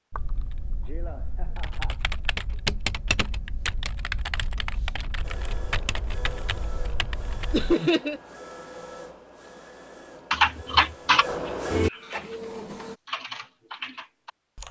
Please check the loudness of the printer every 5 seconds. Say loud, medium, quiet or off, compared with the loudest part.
off, medium, loud.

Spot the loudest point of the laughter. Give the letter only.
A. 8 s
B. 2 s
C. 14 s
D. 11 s
A.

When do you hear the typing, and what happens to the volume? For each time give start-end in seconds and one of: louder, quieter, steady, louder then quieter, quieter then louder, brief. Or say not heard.
0.1-7.8 louder then quieter
10.3-14.6 quieter then louder.